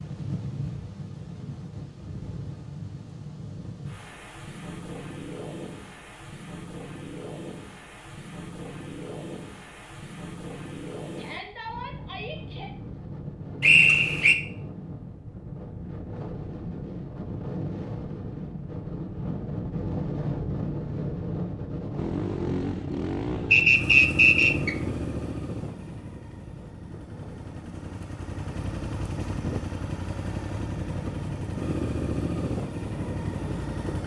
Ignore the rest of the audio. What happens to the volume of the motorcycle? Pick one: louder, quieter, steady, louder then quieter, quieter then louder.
quieter then louder.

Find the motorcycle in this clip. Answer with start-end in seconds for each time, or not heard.
21.9-34.0.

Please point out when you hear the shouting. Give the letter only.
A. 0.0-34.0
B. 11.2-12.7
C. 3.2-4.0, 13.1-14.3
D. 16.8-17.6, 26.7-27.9
B.